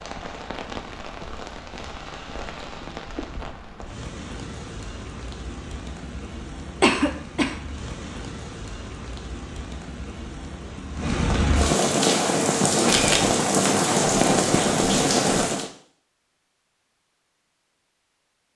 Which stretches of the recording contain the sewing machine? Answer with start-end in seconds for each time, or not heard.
not heard.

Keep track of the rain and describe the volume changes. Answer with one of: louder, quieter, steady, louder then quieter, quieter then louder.
louder.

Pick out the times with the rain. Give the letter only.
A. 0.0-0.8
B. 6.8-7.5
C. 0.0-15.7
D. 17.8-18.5
C.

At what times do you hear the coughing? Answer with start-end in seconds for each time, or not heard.
6.8-7.5.